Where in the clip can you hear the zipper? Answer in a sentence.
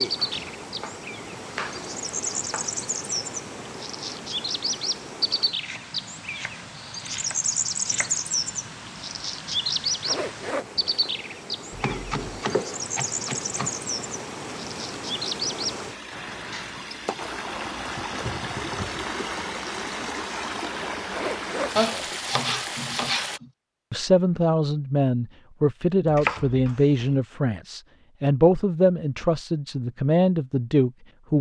The zipper can be heard from 10.1 to 11.3 s and from 21.1 to 22.2 s.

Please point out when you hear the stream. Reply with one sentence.
You can hear the stream from 0.0 to 23.4 s.